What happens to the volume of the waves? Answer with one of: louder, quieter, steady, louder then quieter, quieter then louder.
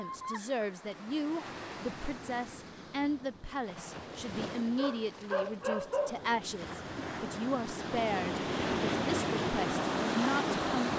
louder.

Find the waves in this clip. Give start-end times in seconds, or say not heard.
0.0-10.9.